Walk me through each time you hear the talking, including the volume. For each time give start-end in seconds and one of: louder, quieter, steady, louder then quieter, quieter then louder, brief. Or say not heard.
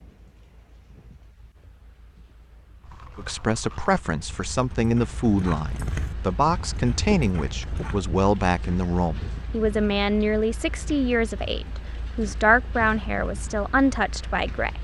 3.1-14.7 steady.